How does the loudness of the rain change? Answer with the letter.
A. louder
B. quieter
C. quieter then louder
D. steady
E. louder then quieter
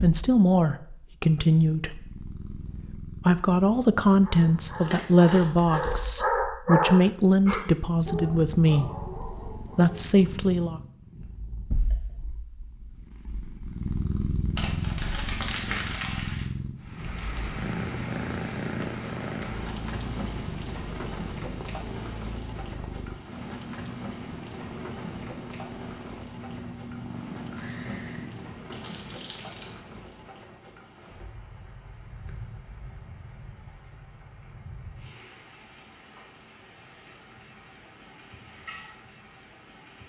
B.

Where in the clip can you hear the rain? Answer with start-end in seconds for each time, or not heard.
16.8-40.0.